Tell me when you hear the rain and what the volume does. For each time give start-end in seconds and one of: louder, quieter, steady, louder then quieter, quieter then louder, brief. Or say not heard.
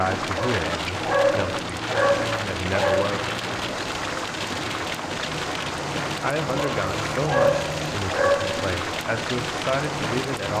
0.0-10.5 steady.